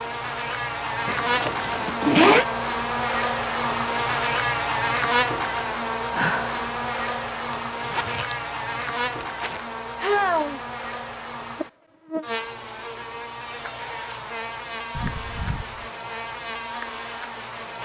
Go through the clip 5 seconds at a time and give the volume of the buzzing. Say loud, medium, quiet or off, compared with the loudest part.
loud, loud, medium, medium.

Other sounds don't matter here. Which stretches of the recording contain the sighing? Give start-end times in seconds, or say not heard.
6.1-6.6, 9.9-10.7.